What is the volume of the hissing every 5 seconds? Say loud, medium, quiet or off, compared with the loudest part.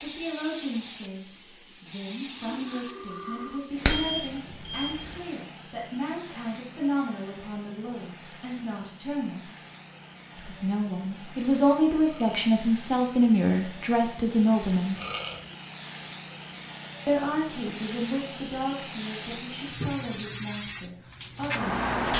medium, quiet, quiet, medium, loud.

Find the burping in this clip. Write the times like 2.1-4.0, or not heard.
2.4-3.6, 12.0-12.4, 14.9-15.4.